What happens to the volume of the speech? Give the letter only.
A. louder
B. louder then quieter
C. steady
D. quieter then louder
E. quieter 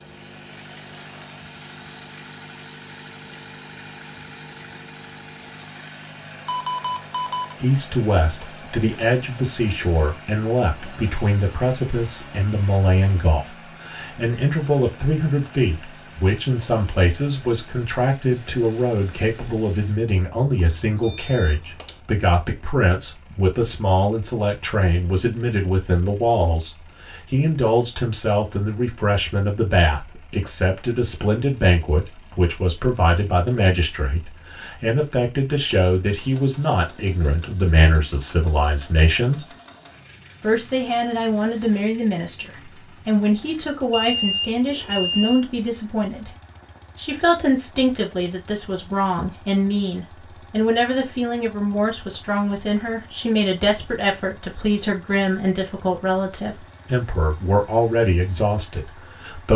C.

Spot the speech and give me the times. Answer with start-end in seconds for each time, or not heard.
7.6-39.5, 40.4-46.3, 47.0-59.5.